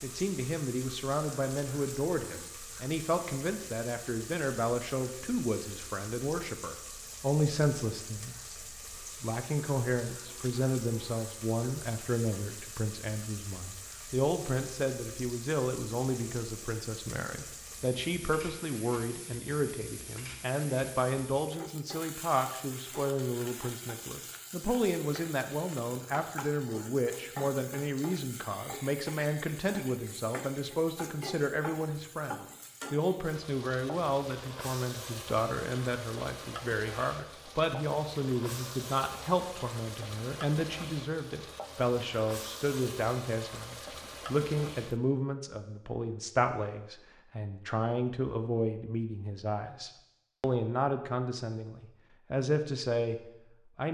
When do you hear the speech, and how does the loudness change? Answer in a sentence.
The speech can be heard from 0.0 to 53.8 s, at a steady volume.